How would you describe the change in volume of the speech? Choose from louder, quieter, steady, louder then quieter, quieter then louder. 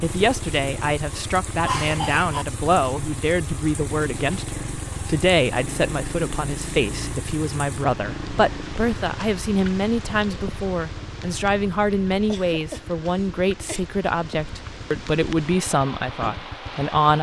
steady.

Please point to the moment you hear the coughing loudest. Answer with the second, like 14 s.
2 s.